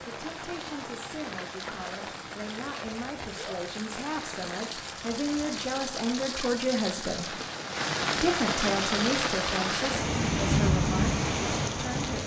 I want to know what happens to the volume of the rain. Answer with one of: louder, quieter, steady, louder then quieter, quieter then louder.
louder.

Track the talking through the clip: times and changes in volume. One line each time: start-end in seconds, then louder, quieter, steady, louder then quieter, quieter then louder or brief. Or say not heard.
0.0-7.4 louder
8.2-12.2 quieter.